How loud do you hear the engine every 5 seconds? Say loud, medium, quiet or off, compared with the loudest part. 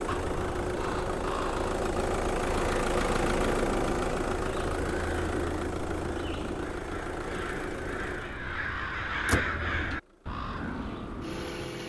loud, medium, medium.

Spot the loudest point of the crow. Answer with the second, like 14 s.
9 s.